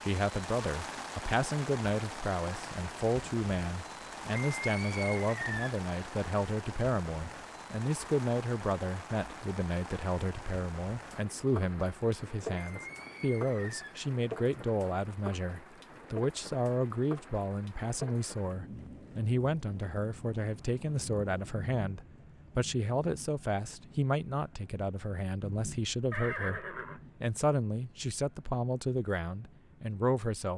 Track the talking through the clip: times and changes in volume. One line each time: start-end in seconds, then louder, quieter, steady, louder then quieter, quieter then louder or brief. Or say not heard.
0.0-30.5 steady.